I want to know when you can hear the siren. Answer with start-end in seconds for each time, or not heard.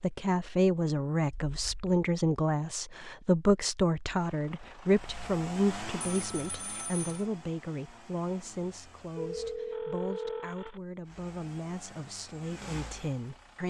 not heard.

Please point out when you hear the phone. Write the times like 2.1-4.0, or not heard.
1.3-2.0, 6.0-7.2, 9.2-10.8.